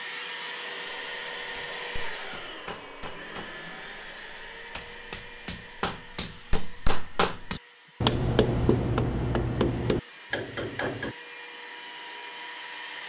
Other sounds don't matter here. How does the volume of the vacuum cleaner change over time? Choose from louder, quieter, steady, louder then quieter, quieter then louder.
quieter then louder.